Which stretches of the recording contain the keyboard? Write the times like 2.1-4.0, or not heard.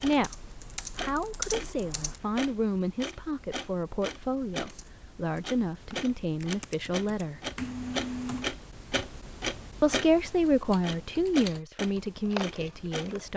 0.1-2.2, 4.7-8.4, 10.5-13.3.